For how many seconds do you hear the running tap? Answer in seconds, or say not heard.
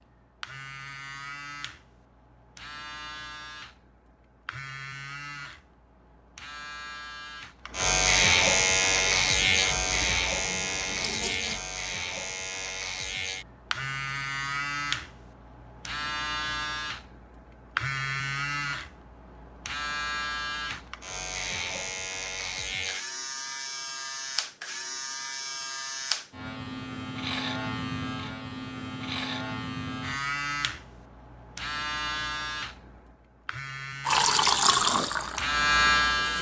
5 s.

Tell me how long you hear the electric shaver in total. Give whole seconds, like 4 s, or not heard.
36 s.